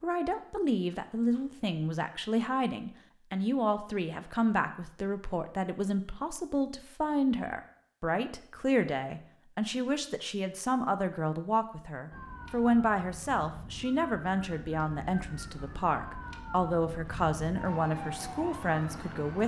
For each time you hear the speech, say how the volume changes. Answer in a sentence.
The speech can be heard from 0.0 to 19.4 s, at a steady volume.